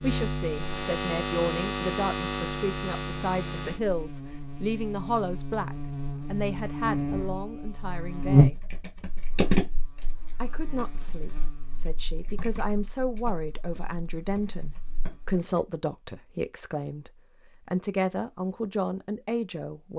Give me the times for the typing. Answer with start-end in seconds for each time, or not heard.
8.2-10.1, 10.8-15.3.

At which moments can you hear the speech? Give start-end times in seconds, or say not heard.
0.0-8.7, 10.4-19.9.